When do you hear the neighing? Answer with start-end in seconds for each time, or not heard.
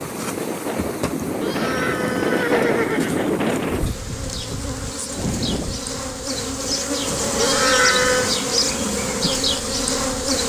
1.4-3.3, 7.3-8.3.